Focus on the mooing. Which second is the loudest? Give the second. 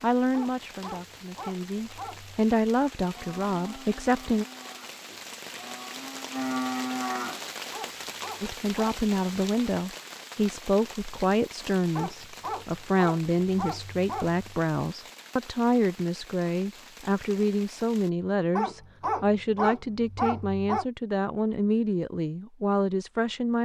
7 s.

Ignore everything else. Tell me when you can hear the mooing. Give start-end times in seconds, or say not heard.
3.1-7.4.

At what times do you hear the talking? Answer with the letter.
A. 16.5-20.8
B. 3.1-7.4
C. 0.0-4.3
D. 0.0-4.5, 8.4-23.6
D.